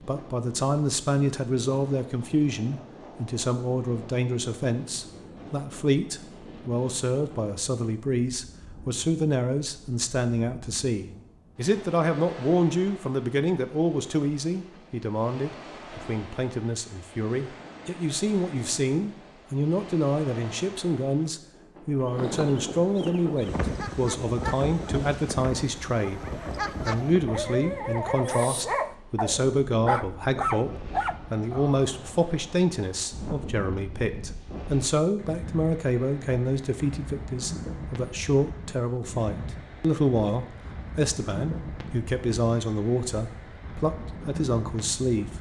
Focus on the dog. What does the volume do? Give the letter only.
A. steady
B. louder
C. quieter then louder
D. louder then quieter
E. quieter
B.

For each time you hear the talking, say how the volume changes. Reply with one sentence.
The talking can be heard from 0.1 to 26.2 s, at a steady volume; and from 26.9 to 45.3 s, at a steady volume.